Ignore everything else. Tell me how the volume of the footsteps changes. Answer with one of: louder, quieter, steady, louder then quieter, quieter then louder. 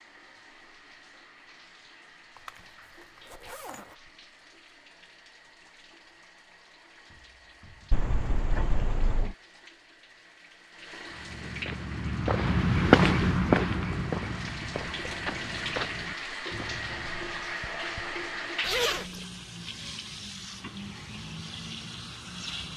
louder then quieter.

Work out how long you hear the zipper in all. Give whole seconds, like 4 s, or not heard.
4 s.